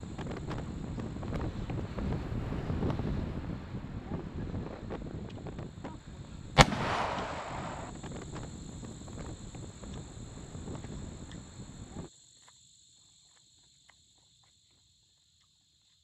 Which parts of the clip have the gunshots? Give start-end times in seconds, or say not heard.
6.5-7.9.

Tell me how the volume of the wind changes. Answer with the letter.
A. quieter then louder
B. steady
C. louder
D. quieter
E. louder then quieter
D.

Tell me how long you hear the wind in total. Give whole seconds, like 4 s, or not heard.
12 s.